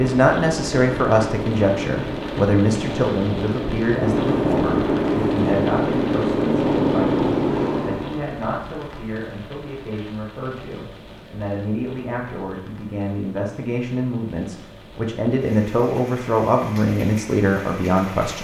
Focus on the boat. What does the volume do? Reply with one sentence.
The loudness of the boat goes up.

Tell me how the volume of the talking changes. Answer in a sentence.
The loudness of the talking goes down, then up.